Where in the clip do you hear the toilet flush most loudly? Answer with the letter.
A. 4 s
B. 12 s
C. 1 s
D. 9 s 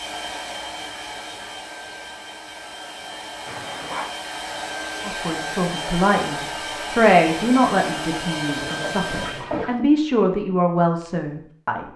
D.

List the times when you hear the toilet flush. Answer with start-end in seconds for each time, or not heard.
3.5-4.2, 8.4-9.9.